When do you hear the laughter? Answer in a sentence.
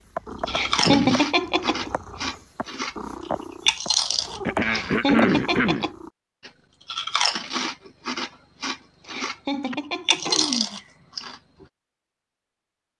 You can hear the laughter from 0.5 to 1.9 s, from 4.6 to 6.0 s and from 9.1 to 10.5 s.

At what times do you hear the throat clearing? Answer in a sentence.
You can hear the throat clearing from 0.8 to 1.6 s, from 4.5 to 5.9 s and from 9.7 to 10.9 s.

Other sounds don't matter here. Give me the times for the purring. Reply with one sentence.
You can hear the purring from 0.1 to 6.1 s.